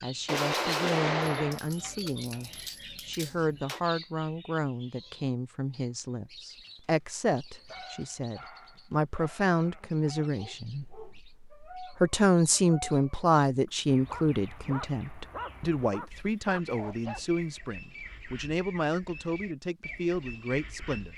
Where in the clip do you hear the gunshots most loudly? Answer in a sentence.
The loudest moment of the gunshots is at 1 second.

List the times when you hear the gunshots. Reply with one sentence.
You can hear the gunshots from 0.2 to 3.8 s.